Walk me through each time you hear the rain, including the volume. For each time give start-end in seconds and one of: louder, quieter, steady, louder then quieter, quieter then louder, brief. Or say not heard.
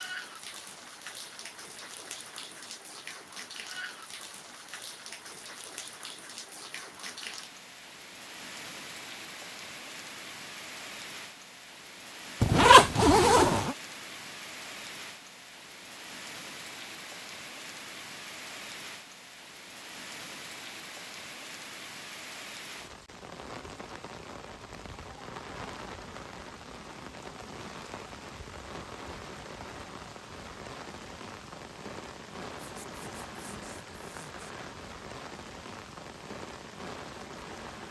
0.0-37.8 steady.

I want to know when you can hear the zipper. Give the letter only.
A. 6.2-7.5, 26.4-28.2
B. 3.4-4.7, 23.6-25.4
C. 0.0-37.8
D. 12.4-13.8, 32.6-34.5
D.